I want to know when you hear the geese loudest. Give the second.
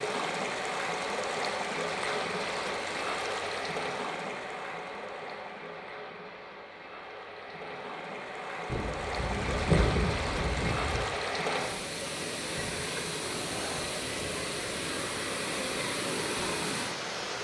10 s.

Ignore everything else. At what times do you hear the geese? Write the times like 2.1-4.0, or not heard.
8.7-11.1.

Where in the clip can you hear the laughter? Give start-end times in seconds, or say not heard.
not heard.